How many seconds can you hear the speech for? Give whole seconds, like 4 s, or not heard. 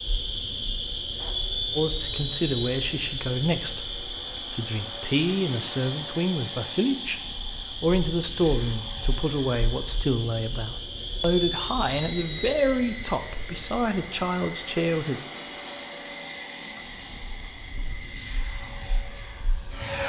13 s.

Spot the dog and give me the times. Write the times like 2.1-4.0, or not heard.
not heard.